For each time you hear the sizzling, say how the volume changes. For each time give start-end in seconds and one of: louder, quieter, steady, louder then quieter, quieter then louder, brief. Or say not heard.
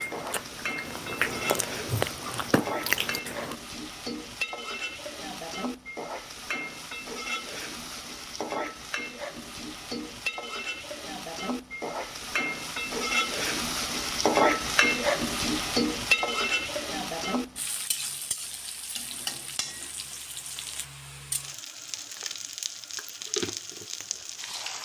0.0-24.7 louder then quieter.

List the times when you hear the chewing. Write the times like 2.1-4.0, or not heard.
0.0-3.5.